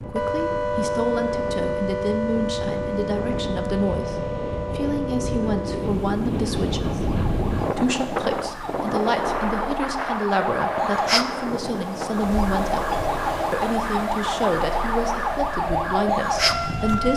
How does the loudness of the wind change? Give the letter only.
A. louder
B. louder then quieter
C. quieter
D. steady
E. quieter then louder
B.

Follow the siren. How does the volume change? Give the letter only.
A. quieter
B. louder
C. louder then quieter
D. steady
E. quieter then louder
E.